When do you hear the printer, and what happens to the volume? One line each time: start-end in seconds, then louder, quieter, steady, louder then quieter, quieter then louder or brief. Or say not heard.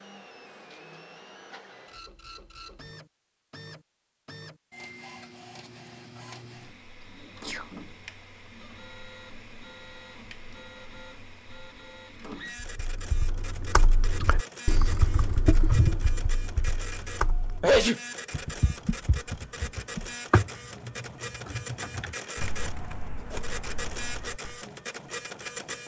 0.0-25.8 louder.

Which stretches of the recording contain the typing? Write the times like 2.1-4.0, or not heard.
12.6-24.6.